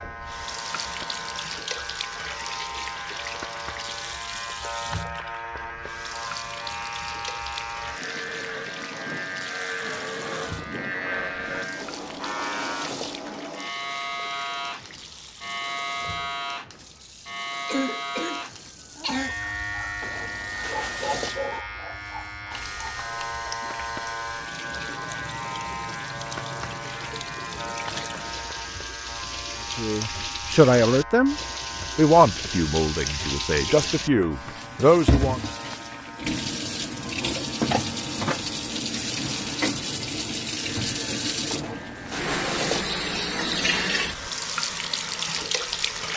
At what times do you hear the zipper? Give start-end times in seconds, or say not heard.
11.8-13.3, 20.0-21.6, 41.5-42.9.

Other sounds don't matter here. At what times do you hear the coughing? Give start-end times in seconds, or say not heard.
17.6-19.4.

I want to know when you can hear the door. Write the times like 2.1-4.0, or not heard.
not heard.